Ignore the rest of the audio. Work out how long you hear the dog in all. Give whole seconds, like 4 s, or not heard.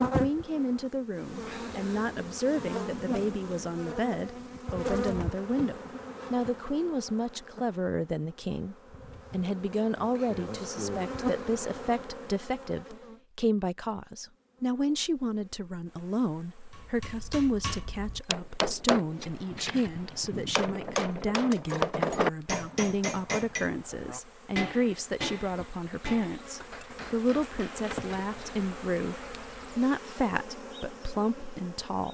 not heard.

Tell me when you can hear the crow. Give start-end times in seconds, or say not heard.
not heard.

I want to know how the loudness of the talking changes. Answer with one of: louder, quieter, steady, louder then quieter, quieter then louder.
steady.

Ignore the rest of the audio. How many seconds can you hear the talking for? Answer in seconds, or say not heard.
32 s.